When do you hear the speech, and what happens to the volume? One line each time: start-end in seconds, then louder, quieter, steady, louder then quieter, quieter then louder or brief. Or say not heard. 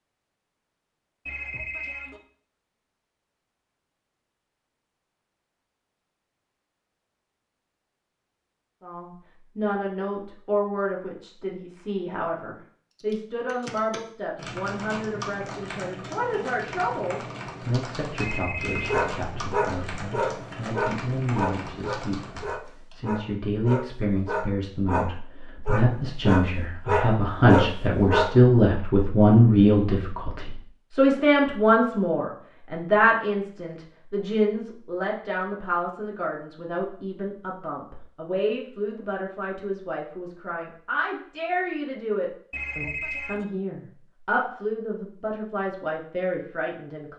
8.8-47.1 louder then quieter.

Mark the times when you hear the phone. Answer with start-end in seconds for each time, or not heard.
1.2-2.2, 18.2-19.1, 42.5-43.5.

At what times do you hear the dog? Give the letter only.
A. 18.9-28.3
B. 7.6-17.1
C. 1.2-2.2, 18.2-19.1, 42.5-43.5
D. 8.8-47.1
A.